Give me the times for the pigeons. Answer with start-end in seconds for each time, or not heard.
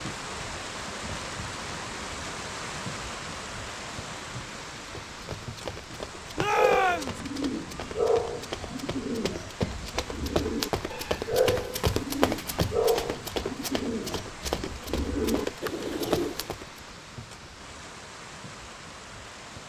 6.5-16.5.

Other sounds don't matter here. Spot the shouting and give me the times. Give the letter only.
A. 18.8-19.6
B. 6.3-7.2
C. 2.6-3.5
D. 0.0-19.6
B.